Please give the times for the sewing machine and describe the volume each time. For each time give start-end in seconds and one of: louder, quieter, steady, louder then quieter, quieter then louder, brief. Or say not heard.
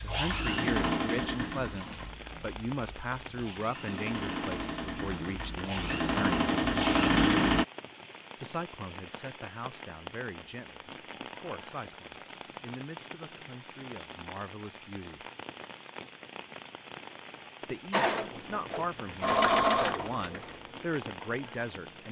0.0-7.7 quieter then louder
17.9-22.0 louder then quieter.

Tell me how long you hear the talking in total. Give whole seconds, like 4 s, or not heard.
18 s.